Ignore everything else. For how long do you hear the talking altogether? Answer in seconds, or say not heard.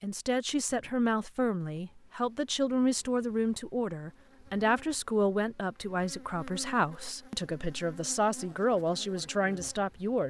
10 s.